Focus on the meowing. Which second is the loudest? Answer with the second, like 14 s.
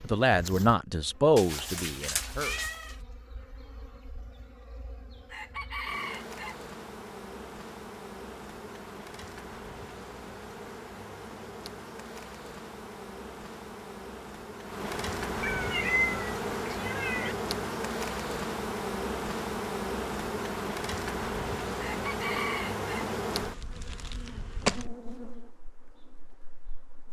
16 s.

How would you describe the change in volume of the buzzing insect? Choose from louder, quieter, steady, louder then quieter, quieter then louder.
louder.